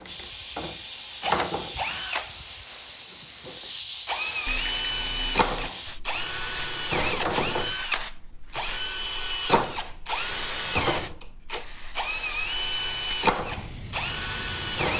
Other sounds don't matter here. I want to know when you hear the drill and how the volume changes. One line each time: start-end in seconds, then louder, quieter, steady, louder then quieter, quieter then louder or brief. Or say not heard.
0.0-14.9 steady.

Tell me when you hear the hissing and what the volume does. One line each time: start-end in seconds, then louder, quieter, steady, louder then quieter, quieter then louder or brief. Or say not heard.
0.0-14.9 quieter.